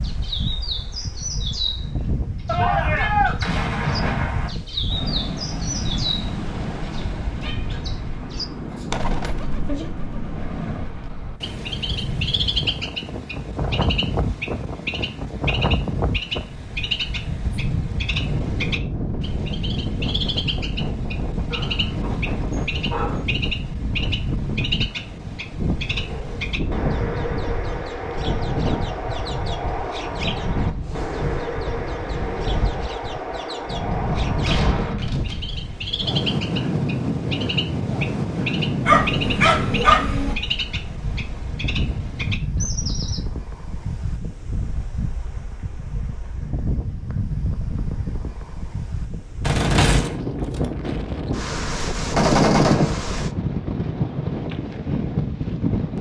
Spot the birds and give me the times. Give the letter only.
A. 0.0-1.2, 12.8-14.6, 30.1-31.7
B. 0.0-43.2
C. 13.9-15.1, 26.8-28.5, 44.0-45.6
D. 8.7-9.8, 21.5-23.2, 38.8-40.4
B.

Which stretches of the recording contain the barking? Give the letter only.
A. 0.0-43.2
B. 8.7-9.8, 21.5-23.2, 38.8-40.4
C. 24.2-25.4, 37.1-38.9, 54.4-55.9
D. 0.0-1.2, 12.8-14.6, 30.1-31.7
B.